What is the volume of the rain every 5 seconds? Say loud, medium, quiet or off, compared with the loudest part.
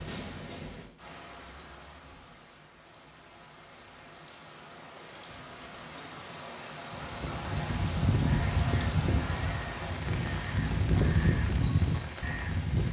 medium, loud, loud.